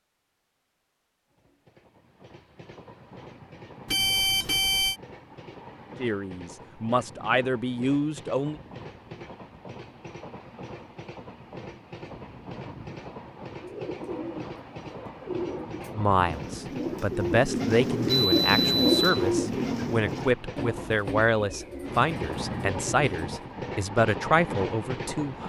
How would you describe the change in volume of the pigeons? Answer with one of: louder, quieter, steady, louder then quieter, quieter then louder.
louder then quieter.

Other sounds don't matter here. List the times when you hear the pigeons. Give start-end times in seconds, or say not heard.
13.6-23.5.